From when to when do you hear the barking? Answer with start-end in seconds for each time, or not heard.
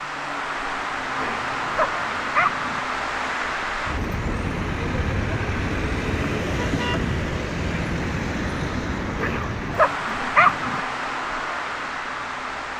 1.1-2.8, 9.2-10.8.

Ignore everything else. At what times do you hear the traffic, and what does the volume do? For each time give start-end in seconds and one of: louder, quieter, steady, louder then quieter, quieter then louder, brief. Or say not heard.
0.0-12.7 steady.